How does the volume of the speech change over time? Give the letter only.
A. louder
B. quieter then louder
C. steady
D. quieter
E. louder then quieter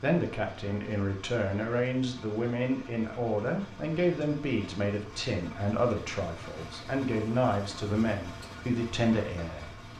C.